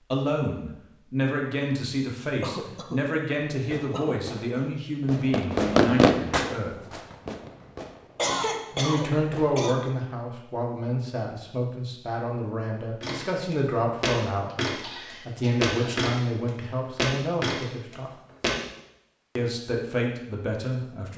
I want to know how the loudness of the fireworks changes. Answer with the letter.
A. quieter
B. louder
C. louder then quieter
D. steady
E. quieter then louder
C.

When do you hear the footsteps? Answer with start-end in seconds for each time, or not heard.
13.0-18.6.